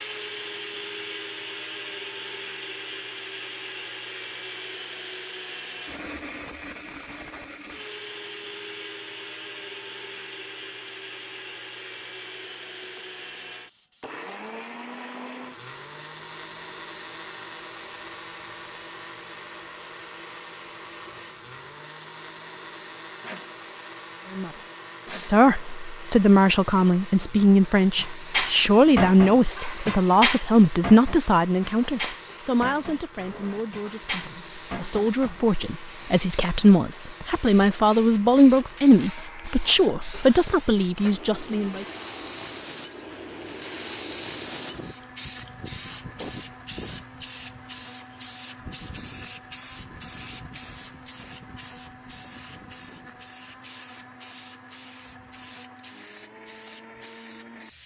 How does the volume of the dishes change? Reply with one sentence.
The loudness of the dishes goes down.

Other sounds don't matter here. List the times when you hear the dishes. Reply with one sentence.
The dishes can be heard from 27.2 to 35.2 s.